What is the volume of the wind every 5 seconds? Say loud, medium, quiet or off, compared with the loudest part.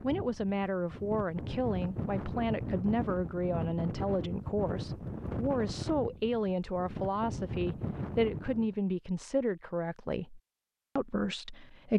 loud, loud, off.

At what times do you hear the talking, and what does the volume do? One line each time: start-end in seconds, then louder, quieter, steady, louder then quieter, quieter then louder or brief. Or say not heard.
0.0-11.9 steady.